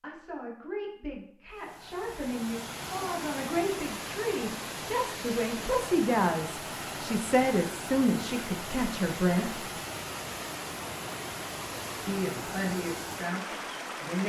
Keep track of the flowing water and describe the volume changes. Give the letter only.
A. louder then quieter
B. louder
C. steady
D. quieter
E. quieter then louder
C.